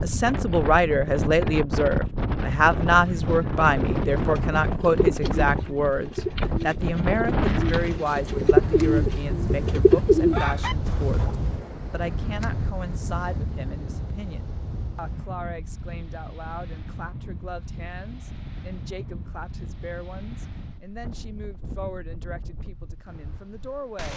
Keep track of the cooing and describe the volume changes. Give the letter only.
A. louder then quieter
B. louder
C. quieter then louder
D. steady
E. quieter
C.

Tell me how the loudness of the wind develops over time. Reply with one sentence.
The loudness of the wind goes down.